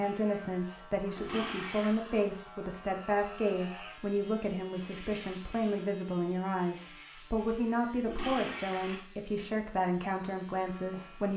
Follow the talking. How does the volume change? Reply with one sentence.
The volume of the talking stays about the same.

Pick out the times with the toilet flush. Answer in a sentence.
The toilet flush can be heard from 1.1 to 2.0 s and from 8.1 to 9.1 s.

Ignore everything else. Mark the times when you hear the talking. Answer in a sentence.
You can hear the talking from 0.0 to 11.3 s.